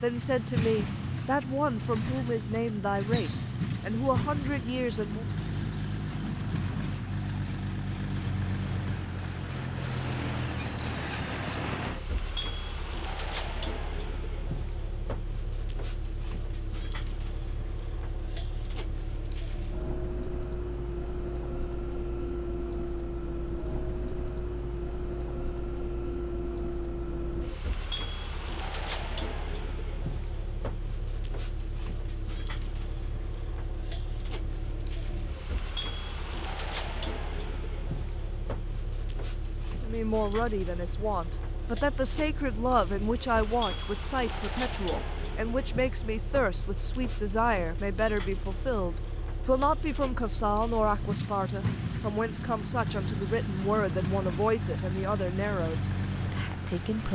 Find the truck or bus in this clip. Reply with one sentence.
The truck or bus can be heard from 0.0 to 57.1 s.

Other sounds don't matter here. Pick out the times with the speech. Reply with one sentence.
You can hear the speech from 0.0 to 5.2 s and from 39.8 to 57.1 s.